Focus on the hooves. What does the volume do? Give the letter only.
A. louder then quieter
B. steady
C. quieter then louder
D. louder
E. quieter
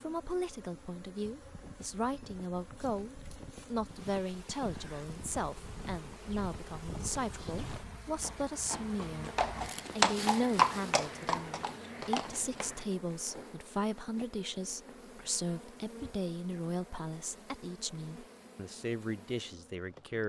D.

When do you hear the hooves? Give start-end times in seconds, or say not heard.
1.4-12.8.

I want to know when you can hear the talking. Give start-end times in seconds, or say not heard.
0.0-9.3, 9.9-20.2.